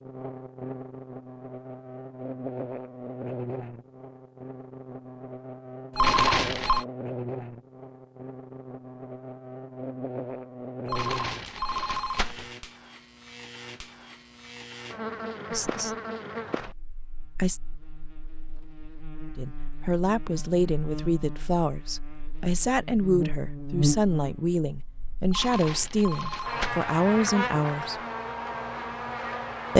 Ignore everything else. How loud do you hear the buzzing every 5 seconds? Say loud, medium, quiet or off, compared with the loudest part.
medium, medium, medium, medium, loud, loud.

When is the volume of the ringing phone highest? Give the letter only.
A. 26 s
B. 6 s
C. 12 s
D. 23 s
B.